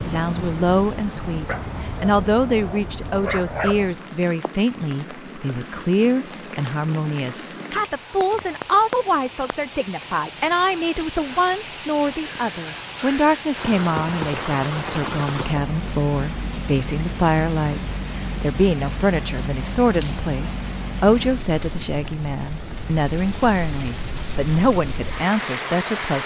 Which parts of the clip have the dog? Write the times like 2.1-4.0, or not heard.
1.4-3.9.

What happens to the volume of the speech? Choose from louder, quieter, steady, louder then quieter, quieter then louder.
steady.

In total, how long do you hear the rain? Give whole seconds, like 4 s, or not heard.
26 s.